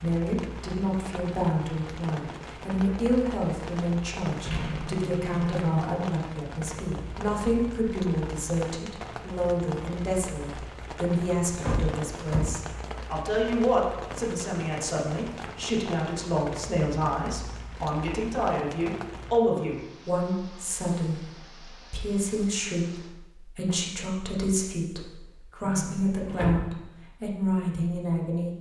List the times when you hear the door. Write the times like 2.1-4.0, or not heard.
4.5-5.7, 11.4-12.7, 25.6-26.6.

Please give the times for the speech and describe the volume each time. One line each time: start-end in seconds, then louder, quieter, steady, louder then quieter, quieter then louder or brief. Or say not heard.
0.0-28.5 steady.